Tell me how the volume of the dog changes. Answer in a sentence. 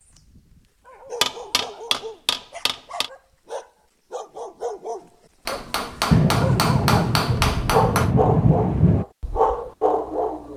The volume of the dog goes up.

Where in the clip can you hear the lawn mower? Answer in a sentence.
The lawn mower can't be heard in this clip.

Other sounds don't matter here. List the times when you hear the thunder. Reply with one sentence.
You can hear the thunder from 6.1 to 9.1 s.